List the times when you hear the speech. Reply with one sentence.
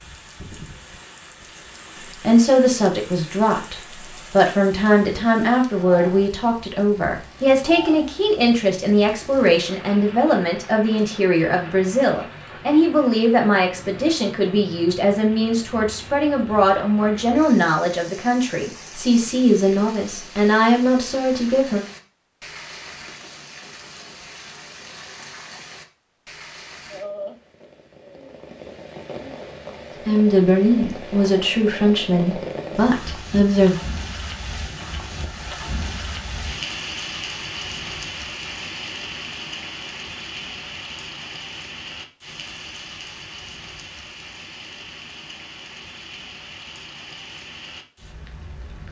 You can hear the speech from 2.1 to 21.9 s and from 30.1 to 33.8 s.